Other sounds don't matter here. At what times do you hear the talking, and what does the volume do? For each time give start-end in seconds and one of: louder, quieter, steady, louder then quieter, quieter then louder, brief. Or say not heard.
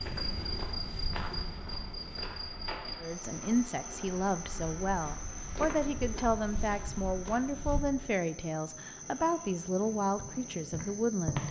3.0-11.4 steady.